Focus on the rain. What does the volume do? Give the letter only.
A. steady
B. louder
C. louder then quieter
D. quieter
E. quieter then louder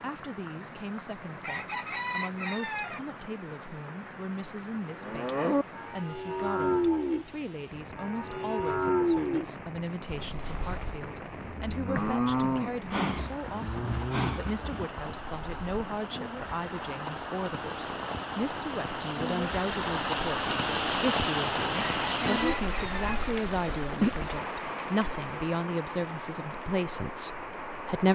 B.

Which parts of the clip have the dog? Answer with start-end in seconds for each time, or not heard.
not heard.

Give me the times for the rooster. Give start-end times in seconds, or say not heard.
1.4-3.0, 21.9-23.4.